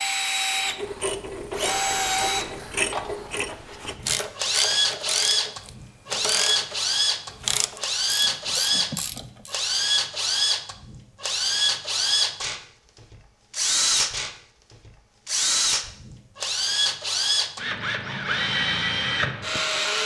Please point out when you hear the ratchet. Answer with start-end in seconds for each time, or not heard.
0.7-9.6.